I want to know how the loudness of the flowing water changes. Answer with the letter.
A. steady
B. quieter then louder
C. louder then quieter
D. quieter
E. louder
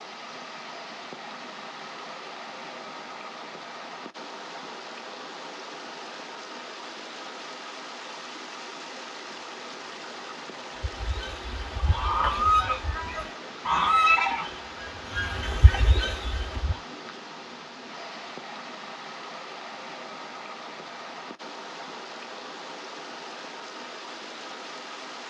A.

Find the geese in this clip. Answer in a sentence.
You can hear the geese from 10.8 to 16.8 s.